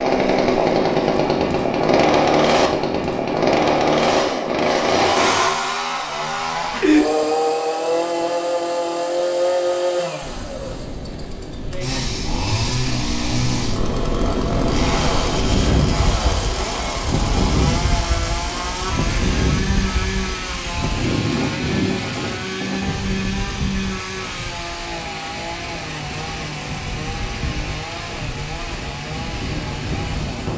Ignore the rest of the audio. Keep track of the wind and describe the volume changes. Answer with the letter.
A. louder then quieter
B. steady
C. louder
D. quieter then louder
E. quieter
A.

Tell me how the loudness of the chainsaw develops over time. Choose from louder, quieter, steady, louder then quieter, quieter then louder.
quieter.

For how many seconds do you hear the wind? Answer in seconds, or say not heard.
20 s.